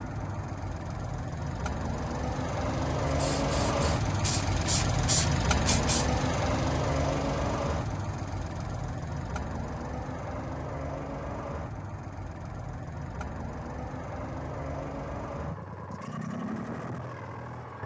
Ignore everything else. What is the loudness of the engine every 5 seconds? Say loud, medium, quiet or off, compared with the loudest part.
loud, loud, medium, medium.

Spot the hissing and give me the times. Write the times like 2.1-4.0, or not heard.
3.0-6.0.